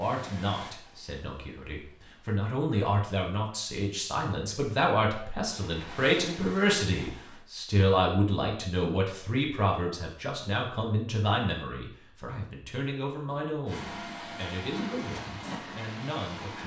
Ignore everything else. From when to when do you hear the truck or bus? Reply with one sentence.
The truck or bus can be heard from 0.0 to 2.4 s, from 5.5 to 7.5 s and from 13.7 to 16.6 s.